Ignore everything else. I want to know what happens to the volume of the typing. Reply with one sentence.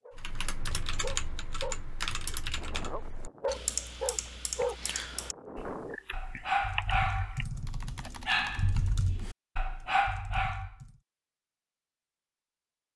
The loudness of the typing goes down.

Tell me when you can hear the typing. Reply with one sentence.
You can hear the typing from 0.1 to 9.1 s.